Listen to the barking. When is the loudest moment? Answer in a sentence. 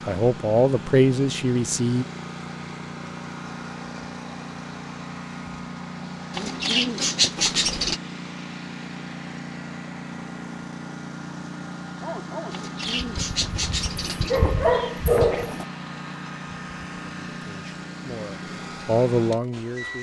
The loudest moment of the barking is at 15 seconds.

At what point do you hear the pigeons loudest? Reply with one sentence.
The volume of the pigeons peaks at 7 seconds.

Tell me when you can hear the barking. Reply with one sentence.
The barking can be heard from 12.0 to 15.7 s.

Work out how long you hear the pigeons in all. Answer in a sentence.
The pigeons can be heard for 5 seconds in total.